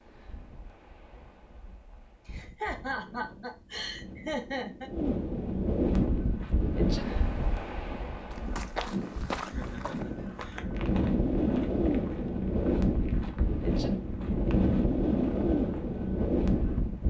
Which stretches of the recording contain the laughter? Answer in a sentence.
The laughter can be heard from 2.2 to 4.9 s and from 9.4 to 10.7 s.